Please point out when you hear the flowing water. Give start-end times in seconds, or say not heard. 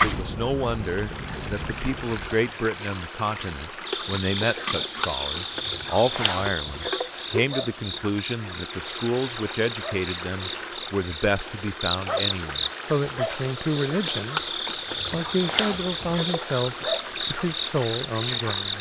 0.0-18.7.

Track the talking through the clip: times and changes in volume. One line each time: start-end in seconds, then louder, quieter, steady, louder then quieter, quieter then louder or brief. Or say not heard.
0.0-18.7 steady.